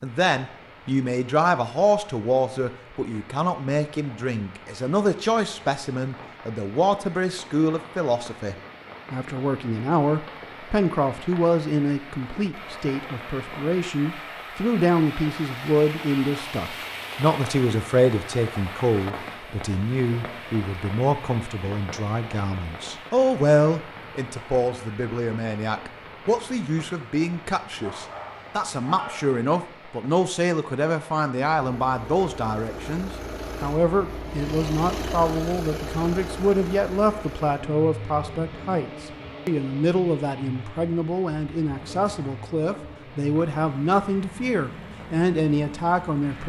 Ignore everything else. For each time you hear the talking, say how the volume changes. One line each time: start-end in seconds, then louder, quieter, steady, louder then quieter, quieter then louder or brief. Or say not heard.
0.0-46.4 steady.